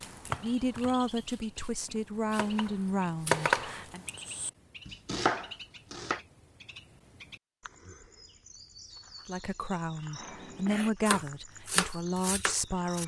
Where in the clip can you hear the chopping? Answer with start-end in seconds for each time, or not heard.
0.0-6.2, 10.2-13.0.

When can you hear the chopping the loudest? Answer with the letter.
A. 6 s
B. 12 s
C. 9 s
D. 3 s
D.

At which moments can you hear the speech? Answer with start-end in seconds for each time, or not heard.
0.3-4.0, 9.2-13.0.